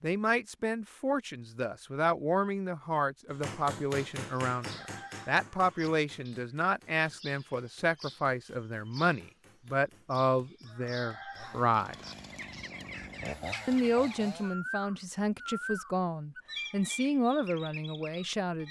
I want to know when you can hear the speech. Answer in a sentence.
You can hear the speech from 0.0 to 11.9 s and from 13.7 to 18.6 s.